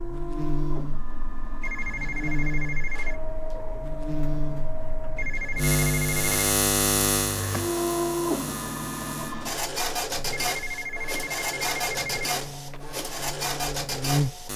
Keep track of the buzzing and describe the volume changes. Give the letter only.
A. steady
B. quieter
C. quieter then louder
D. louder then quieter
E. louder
D.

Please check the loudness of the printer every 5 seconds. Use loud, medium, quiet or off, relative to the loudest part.
medium, loud, loud.